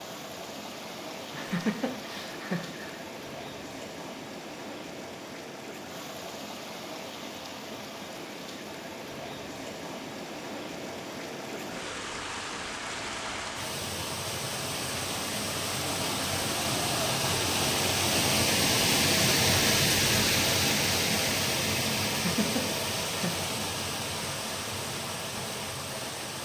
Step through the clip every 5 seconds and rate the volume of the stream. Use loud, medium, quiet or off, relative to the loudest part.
quiet, quiet, medium, loud, loud, medium.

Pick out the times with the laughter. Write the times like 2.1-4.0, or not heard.
1.3-3.0, 22.1-23.4.